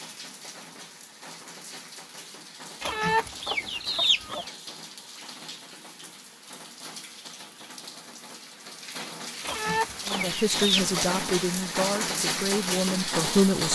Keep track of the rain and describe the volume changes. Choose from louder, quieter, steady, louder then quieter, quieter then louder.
louder.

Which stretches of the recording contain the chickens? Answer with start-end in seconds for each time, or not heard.
2.8-4.5, 9.4-11.1.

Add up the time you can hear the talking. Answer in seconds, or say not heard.
4 s.